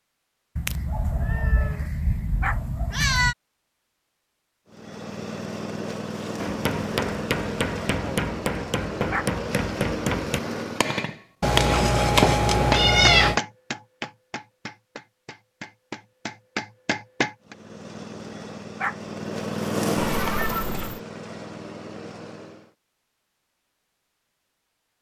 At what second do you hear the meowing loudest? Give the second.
13 s.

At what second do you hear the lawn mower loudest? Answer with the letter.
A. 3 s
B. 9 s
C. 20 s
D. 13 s
C.